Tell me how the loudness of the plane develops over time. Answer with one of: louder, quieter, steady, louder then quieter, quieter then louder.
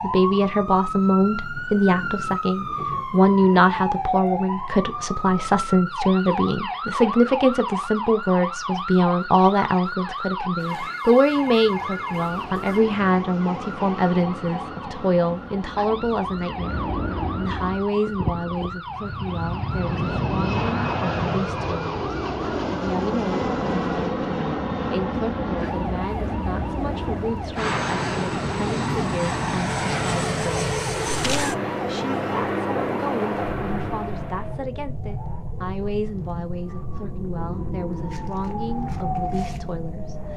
louder.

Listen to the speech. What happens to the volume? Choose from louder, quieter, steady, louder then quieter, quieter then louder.
quieter.